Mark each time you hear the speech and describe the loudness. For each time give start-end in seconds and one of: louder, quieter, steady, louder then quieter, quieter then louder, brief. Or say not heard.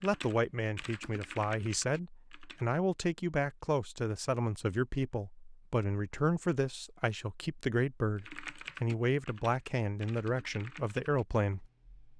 0.0-11.7 steady.